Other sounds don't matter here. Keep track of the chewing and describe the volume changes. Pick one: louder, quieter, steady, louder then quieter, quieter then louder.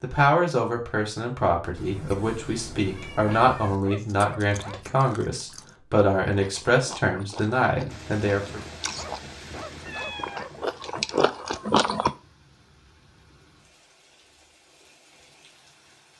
louder.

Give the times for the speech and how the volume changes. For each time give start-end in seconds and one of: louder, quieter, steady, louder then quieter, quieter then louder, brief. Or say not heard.
0.0-8.6 steady.